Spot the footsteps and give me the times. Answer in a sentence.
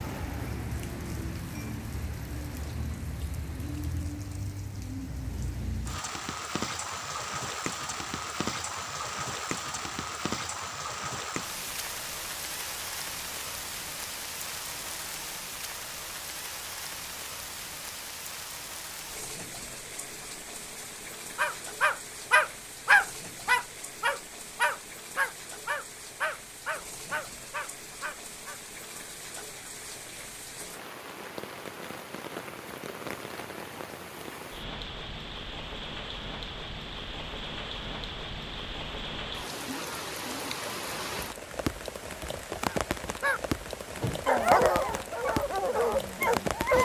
The footsteps can't be heard in this clip.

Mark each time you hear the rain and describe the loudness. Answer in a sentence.
The rain can be heard from 0.0 to 46.8 s, getting quieter then louder.